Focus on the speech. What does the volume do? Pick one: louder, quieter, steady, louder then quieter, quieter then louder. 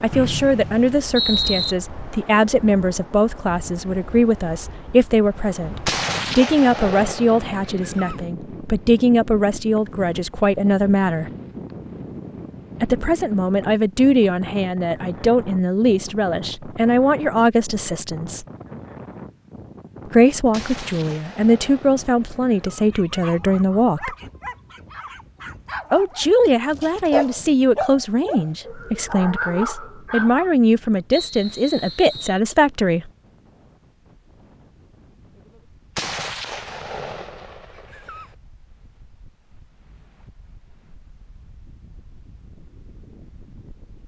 steady.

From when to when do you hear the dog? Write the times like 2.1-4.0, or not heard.
22.9-30.5.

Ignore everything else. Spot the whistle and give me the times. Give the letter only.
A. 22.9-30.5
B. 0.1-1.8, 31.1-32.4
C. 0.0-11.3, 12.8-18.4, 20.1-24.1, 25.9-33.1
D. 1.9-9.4
B.